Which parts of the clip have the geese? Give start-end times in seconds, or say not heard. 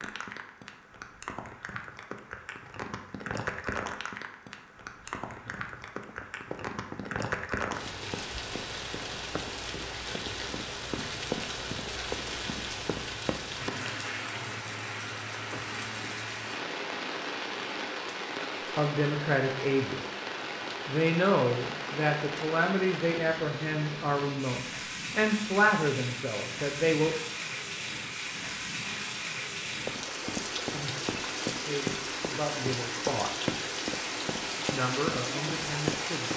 not heard.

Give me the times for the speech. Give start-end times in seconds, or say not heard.
18.8-20.0, 20.9-27.1, 31.6-33.3, 34.5-36.3.